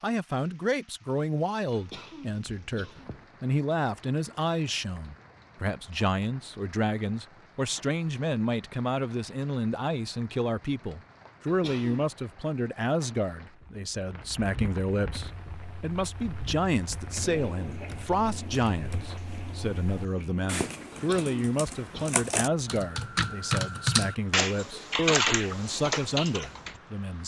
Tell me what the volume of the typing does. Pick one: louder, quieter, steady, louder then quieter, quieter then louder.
louder.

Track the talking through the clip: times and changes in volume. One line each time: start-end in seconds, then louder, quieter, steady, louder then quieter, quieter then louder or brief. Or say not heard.
0.0-27.2 steady.